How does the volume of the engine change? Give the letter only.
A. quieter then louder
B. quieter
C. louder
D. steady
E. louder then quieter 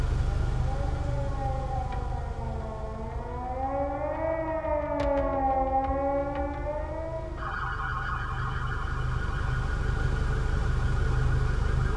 A.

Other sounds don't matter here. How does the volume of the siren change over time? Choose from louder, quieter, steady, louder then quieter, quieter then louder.
louder then quieter.